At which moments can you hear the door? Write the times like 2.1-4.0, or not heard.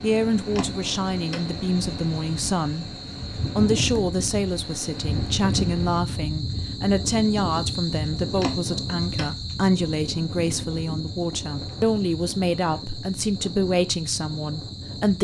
0.5-1.5, 8.3-9.3.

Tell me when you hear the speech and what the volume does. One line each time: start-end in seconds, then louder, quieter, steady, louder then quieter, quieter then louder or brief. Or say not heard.
0.0-2.9 brief
3.5-15.1 steady.